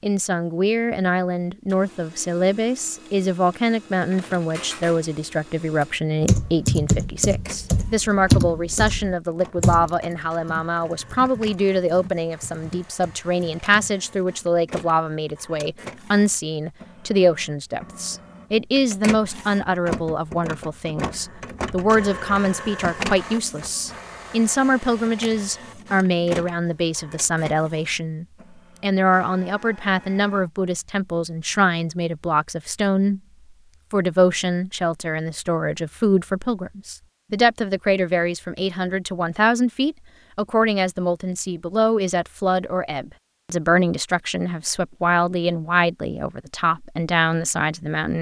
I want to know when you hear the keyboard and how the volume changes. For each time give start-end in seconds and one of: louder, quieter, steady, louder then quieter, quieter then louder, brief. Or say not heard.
6.2-13.9 quieter.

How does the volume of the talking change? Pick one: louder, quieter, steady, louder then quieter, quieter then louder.
steady.